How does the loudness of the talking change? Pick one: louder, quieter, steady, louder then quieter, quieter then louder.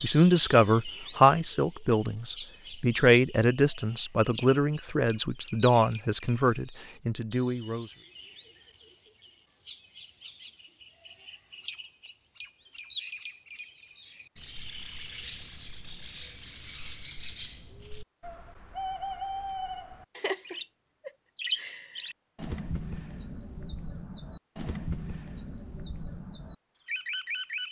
quieter.